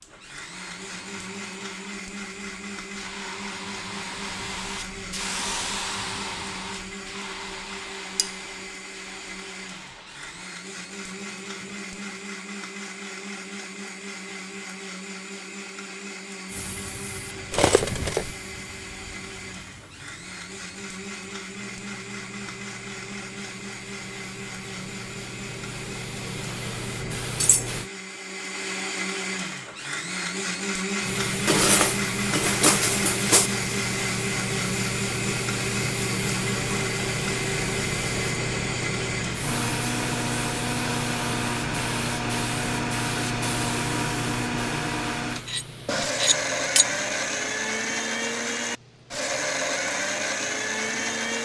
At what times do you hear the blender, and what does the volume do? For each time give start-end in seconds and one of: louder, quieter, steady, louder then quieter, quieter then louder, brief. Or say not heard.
0.0-51.4 louder.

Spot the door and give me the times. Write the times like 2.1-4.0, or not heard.
not heard.